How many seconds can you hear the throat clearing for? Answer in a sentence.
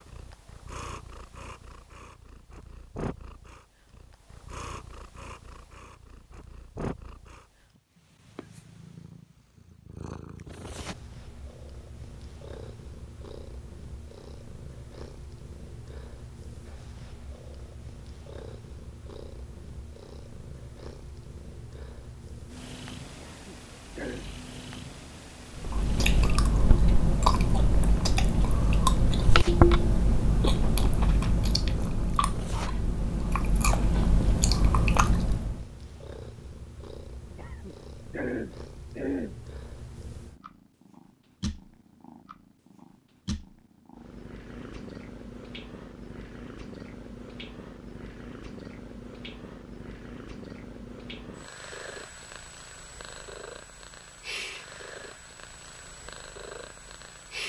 The throat clearing can be heard for 3 seconds in total.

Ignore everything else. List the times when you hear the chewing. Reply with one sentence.
The chewing can be heard from 25.6 to 35.6 s.